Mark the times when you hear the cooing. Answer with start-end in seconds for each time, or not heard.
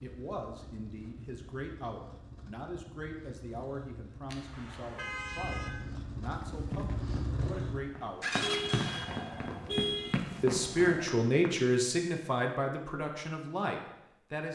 not heard.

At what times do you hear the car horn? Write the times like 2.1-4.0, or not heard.
4.2-5.7, 8.4-10.2.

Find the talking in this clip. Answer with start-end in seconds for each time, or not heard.
0.0-8.3, 10.4-14.5.